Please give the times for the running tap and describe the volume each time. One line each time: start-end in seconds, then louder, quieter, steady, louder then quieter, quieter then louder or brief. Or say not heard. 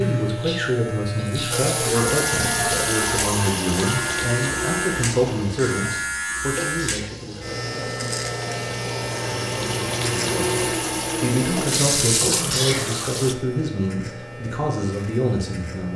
1.5-13.3 quieter then louder.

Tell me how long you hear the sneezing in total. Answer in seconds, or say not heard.
4 s.